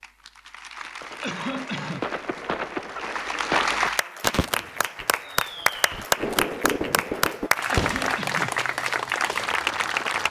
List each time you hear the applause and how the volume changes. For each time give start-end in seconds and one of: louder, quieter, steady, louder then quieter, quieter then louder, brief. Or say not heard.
0.0-10.2 louder.